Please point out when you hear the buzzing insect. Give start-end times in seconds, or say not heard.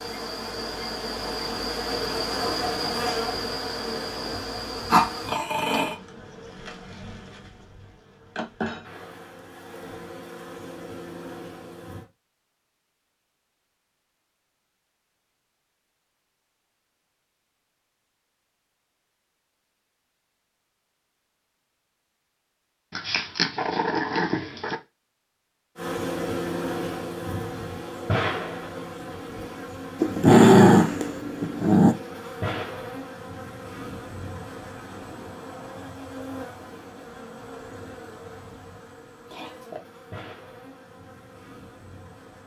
0.0-12.1, 25.8-42.4.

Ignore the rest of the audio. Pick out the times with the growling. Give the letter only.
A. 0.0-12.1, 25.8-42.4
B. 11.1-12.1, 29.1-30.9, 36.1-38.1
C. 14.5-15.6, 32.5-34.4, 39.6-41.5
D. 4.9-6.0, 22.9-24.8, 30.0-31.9
D.